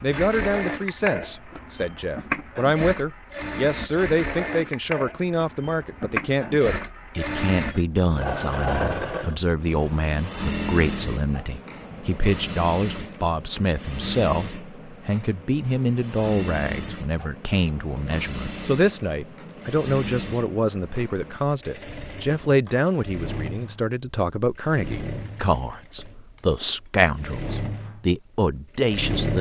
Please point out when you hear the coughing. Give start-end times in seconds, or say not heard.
not heard.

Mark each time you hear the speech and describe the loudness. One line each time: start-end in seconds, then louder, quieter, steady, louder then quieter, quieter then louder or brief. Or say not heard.
0.0-29.3 steady.